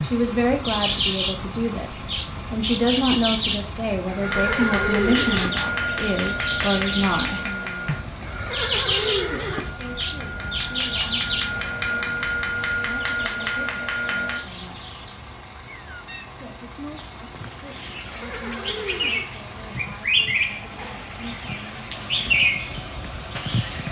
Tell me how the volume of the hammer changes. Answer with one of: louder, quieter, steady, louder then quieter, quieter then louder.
quieter then louder.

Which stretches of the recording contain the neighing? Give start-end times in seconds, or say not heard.
4.0-5.5, 8.2-9.6, 17.9-19.3.